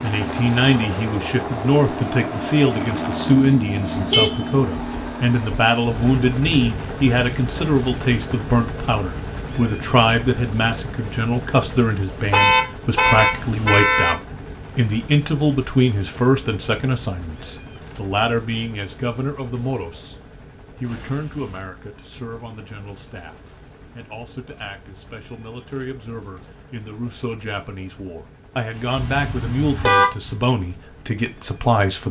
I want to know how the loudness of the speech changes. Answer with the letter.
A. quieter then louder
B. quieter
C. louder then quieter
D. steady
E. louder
A.